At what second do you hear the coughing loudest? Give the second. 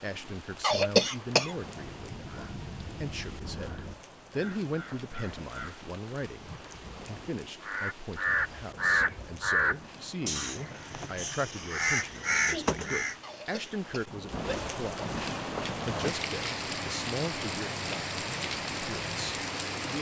1 s.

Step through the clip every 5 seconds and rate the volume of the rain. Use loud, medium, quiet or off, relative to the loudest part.
quiet, quiet, medium, loud.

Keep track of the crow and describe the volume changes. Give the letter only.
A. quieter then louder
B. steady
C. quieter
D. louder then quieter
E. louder
E.